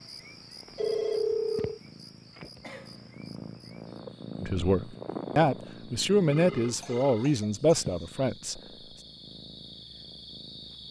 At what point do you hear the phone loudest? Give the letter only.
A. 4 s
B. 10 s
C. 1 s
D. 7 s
C.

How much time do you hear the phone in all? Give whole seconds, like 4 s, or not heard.
2 s.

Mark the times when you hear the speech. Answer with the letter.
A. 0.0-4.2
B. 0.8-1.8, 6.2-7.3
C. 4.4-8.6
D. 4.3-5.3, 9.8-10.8
C.